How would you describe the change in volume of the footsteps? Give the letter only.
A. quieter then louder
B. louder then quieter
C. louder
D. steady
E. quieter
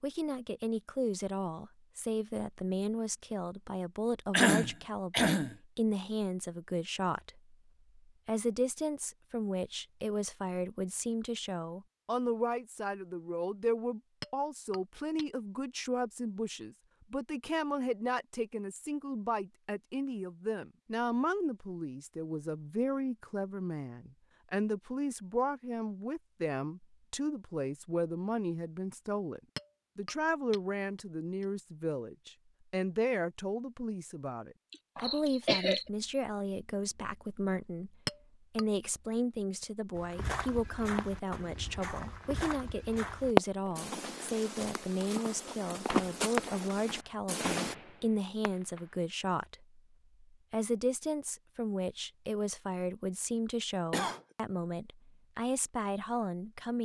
C.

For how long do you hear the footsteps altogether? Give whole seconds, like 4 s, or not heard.
8 s.